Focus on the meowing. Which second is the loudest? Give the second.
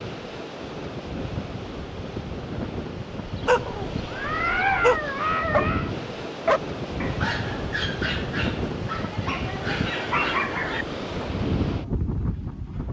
5 s.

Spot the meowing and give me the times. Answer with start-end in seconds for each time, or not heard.
3.6-5.9.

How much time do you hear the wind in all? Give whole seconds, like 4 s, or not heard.
13 s.